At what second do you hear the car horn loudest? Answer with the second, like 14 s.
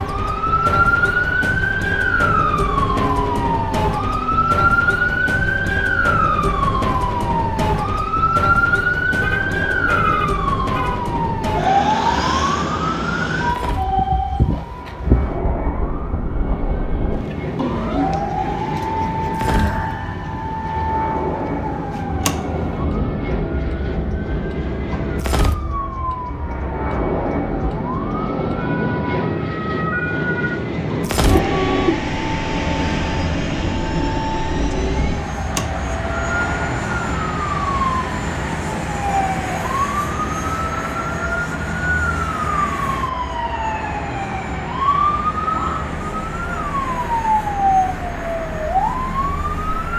32 s.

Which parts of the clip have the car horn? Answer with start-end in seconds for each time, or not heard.
9.2-11.0, 31.1-32.4.